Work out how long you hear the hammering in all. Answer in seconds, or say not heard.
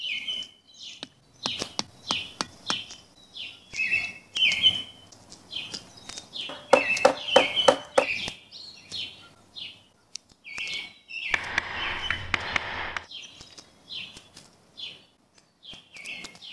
5 s.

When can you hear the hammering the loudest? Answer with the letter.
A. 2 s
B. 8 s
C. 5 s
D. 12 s
B.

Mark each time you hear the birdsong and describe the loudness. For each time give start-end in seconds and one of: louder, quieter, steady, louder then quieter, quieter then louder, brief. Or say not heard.
0.0-16.4 louder then quieter.